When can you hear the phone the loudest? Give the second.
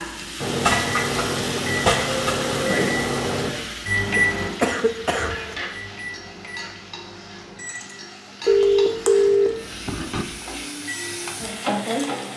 9 s.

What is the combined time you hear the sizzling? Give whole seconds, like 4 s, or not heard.
12 s.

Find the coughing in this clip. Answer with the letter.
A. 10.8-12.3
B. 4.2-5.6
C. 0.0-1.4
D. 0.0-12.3
B.